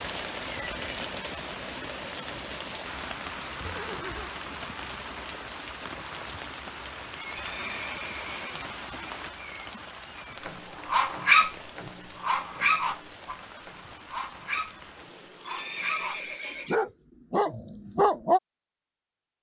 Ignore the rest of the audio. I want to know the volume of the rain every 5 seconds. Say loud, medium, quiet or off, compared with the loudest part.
loud, loud, medium, quiet.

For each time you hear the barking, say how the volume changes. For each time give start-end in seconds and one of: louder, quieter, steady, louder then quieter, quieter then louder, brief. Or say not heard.
10.4-18.4 quieter then louder.